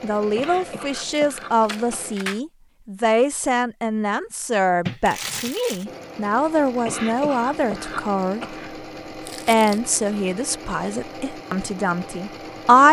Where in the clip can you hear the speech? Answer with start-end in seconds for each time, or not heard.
0.0-8.6, 9.4-12.8.